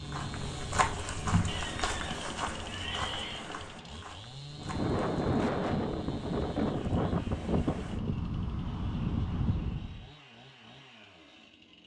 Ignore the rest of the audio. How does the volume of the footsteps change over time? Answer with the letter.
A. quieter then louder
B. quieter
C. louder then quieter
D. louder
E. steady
B.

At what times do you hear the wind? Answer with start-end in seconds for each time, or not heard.
0.0-10.1.